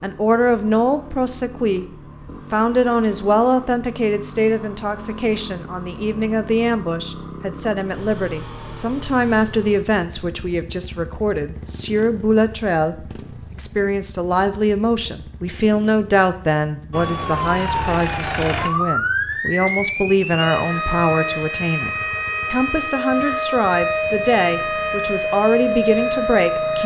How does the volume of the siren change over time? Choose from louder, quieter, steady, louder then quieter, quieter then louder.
steady.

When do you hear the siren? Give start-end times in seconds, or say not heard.
16.9-26.8.